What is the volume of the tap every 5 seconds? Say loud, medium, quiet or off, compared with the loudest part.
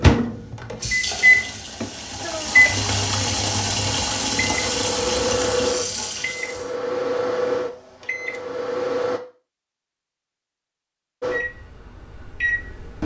loud, loud, off.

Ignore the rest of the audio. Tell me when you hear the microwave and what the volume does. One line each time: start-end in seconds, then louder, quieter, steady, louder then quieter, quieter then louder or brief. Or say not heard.
0.0-9.2 quieter
11.2-13.0 brief.